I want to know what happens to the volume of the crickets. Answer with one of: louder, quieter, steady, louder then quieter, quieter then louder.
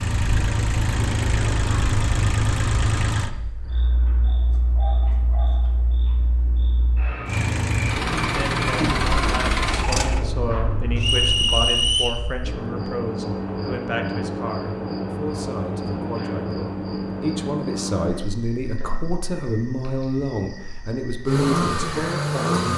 louder then quieter.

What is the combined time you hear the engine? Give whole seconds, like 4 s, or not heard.
8 s.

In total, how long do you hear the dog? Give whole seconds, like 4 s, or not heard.
2 s.